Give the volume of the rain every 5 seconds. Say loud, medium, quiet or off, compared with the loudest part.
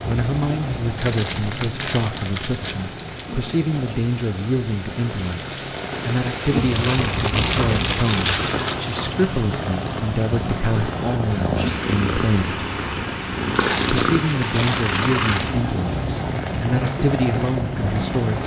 medium, loud, medium, medium.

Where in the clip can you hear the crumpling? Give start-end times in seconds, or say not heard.
0.9-3.2, 6.8-8.8, 13.6-15.6.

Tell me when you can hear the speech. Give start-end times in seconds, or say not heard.
0.1-12.7, 13.9-18.4.